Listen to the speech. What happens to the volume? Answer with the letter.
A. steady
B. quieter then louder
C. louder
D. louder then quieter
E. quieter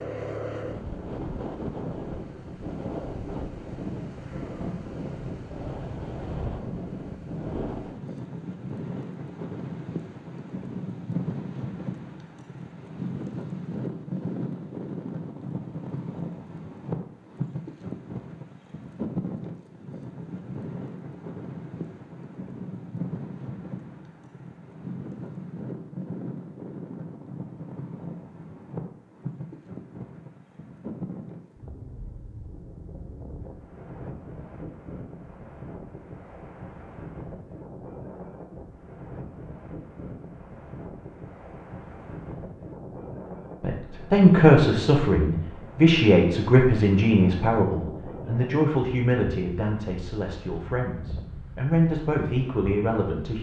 B.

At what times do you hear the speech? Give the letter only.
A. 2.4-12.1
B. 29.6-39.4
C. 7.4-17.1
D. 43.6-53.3
D.